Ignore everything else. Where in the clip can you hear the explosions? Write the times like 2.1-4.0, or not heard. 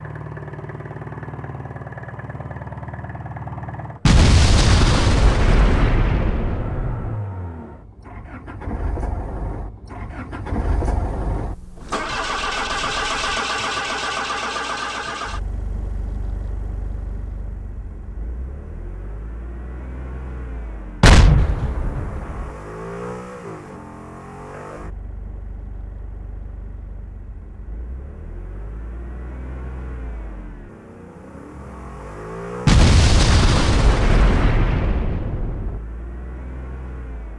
4.0-7.2, 21.0-22.6, 32.6-35.8.